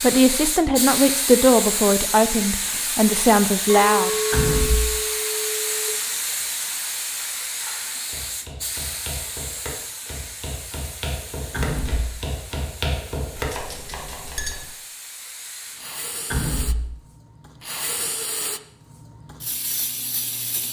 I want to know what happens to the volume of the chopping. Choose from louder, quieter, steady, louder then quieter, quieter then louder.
louder.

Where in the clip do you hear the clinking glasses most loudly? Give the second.
4 s.